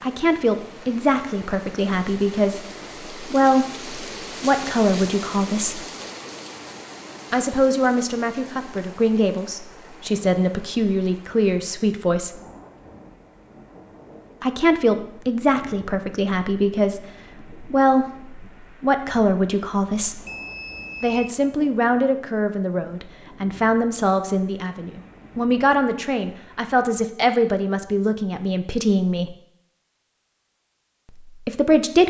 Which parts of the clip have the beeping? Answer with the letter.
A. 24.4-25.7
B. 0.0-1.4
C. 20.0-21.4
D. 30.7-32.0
C.